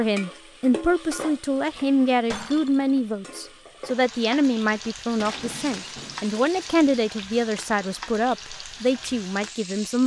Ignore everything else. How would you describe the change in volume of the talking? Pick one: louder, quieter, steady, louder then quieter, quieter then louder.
steady.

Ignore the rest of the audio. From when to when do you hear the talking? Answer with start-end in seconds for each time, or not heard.
0.0-10.0.